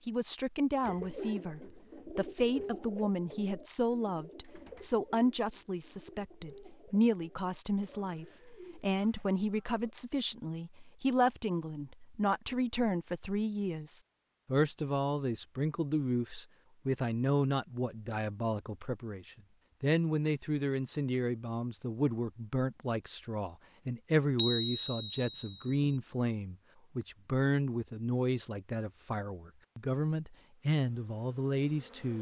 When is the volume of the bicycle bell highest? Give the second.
25 s.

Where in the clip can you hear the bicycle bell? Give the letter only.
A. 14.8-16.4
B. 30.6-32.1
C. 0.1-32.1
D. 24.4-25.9
D.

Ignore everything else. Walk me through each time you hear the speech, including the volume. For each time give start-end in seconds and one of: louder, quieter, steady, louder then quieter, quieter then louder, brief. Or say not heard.
0.1-32.1 steady.